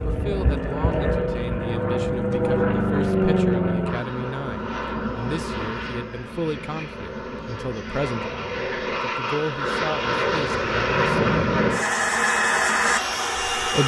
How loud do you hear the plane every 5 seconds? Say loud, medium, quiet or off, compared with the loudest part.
loud, medium, loud.